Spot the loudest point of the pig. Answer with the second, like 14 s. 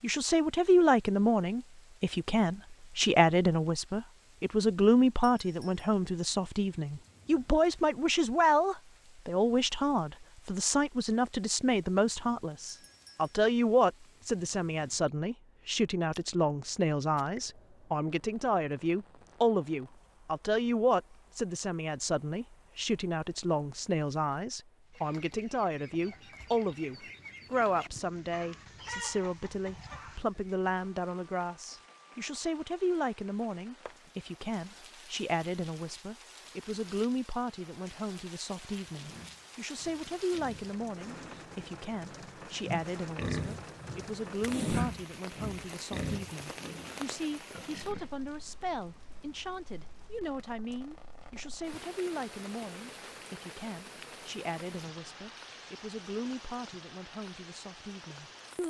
45 s.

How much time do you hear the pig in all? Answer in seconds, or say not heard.
9 s.